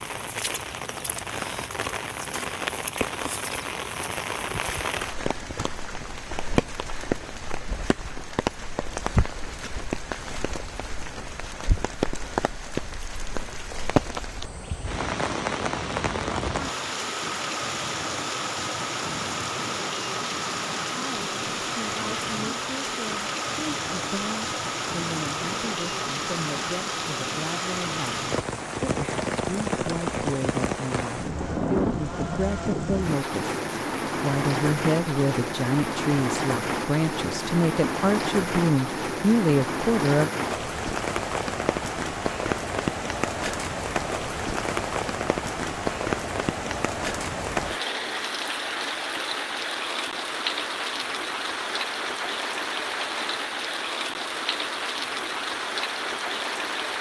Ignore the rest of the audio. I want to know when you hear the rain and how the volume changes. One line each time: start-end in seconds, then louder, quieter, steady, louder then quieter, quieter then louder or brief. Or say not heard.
0.0-56.9 steady.